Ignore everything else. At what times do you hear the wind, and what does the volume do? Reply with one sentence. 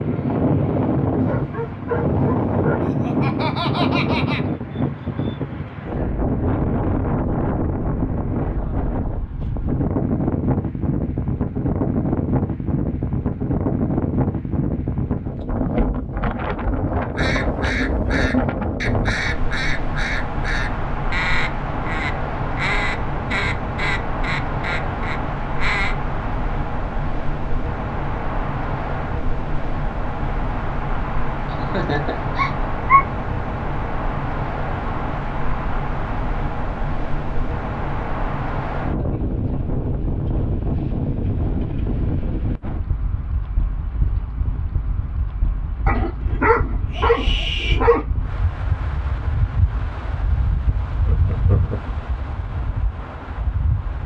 You can hear the wind from 0.0 to 54.0 s, getting quieter.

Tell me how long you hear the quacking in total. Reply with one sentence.
You can hear the quacking for 9 seconds altogether.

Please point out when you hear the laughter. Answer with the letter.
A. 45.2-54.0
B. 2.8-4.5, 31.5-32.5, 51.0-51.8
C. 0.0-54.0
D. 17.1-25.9
B.